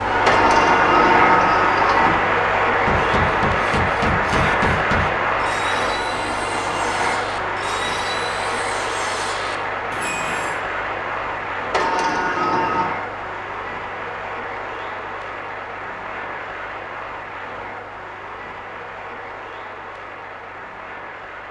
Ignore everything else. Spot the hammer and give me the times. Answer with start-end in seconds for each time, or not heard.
2.9-5.1.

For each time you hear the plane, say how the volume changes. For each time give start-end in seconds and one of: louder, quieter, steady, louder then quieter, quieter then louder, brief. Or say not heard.
0.0-21.4 quieter.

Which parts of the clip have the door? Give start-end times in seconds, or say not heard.
0.2-2.2, 11.7-12.9.